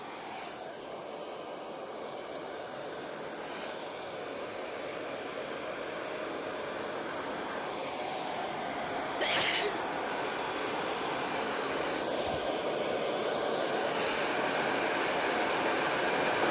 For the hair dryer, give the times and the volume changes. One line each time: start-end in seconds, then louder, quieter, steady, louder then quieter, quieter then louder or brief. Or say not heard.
0.0-16.4 louder.